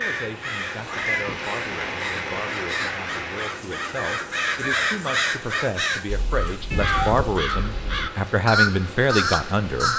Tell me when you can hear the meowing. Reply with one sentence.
You can hear the meowing from 0.8 to 1.4 s and from 6.7 to 7.4 s.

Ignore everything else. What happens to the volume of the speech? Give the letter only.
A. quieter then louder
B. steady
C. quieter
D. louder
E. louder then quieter
D.